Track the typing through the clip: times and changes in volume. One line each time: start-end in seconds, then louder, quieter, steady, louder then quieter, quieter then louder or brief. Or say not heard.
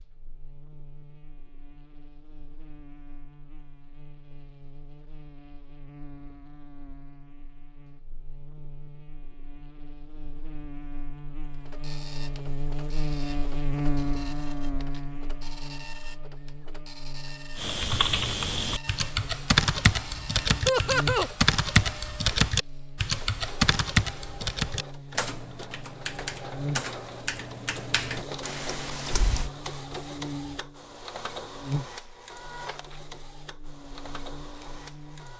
17.6-29.5 quieter.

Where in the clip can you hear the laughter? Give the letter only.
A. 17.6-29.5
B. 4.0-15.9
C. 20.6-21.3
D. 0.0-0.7
C.